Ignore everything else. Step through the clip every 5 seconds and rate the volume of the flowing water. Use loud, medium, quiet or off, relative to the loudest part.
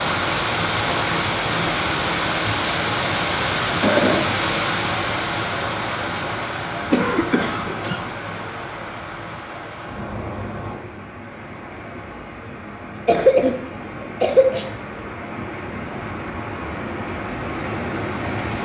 loud, medium, quiet, medium.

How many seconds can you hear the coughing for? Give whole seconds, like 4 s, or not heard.
3 s.